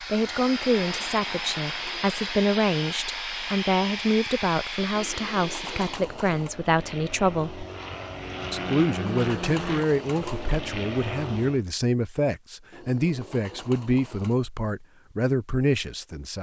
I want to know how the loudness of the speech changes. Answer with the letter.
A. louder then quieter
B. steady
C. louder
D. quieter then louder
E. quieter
B.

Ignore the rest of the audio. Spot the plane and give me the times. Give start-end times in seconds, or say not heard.
0.0-11.7.